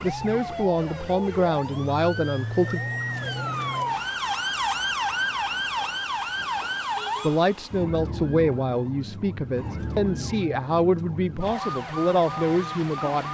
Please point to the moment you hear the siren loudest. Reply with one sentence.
The volume of the siren peaks at 5 seconds.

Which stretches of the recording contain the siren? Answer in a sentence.
The siren can be heard from 0.0 to 13.2 s.